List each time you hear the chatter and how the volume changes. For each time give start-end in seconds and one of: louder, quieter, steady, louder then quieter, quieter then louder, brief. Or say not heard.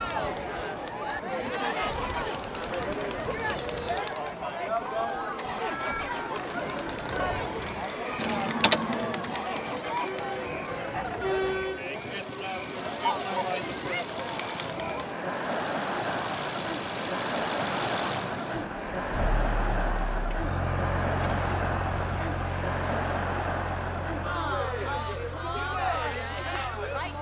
0.0-27.1 steady.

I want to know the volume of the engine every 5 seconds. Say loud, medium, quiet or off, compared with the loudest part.
loud, loud, medium, loud, loud, medium.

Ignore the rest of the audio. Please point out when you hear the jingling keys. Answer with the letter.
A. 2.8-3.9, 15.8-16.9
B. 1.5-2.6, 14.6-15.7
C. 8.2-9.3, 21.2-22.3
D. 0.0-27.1
C.